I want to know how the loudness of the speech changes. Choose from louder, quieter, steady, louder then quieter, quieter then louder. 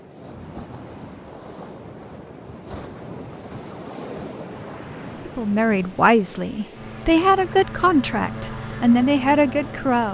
quieter then louder.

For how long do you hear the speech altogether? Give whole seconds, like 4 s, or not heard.
5 s.